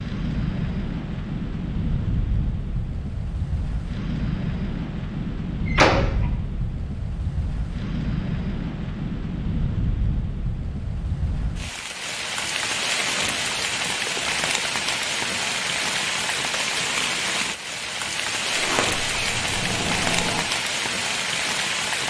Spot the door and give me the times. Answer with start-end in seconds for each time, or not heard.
5.7-6.3, 18.6-20.4.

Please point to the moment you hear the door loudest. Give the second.
6 s.